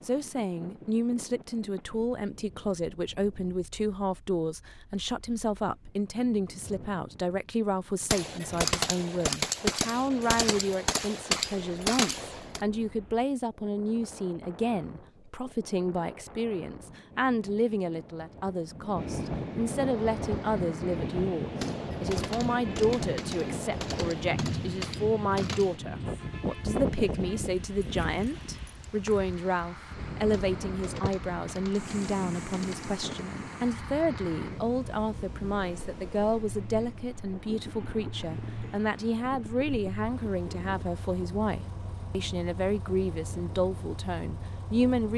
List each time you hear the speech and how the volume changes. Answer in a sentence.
The speech can be heard from 0.1 to 45.1 s, at a steady volume.